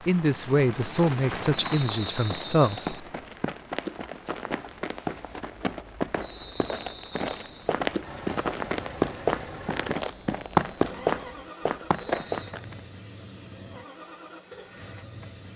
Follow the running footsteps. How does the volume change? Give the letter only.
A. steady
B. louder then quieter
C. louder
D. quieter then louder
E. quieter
C.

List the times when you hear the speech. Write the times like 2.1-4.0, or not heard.
0.1-3.0.